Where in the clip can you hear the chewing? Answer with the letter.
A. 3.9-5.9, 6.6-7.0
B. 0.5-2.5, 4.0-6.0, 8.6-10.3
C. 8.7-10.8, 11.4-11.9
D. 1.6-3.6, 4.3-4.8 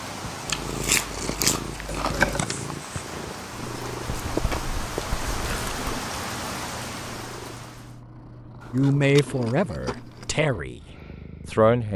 B.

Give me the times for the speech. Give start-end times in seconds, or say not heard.
8.7-10.8, 11.4-11.9.